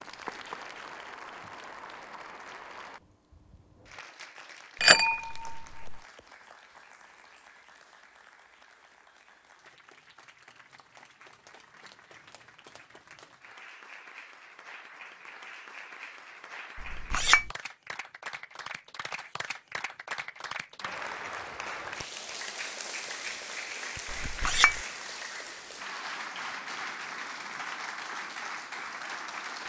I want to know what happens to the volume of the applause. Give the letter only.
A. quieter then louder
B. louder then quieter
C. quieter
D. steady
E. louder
A.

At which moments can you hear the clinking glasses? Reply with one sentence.
The clinking glasses can be heard from 4.8 to 6.0 s, from 16.8 to 17.5 s and from 24.1 to 24.8 s.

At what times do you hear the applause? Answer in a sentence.
You can hear the applause from 0.0 to 29.6 s.